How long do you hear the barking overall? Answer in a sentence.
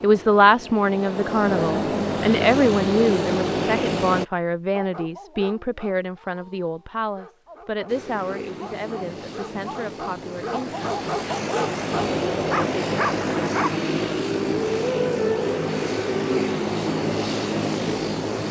The barking can be heard for 9 seconds in total.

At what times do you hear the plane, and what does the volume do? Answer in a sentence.
The plane can be heard from 0.0 to 4.2 s, getting louder; and from 7.8 to 18.4 s, getting louder.